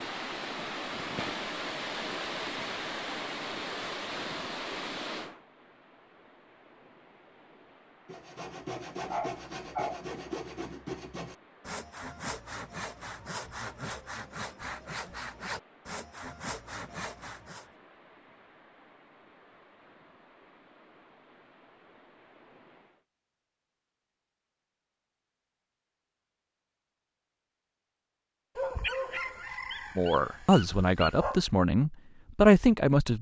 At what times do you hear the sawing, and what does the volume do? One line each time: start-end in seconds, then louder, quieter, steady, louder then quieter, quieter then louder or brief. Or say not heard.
8.1-17.7 steady.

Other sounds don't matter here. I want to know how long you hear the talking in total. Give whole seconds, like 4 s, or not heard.
3 s.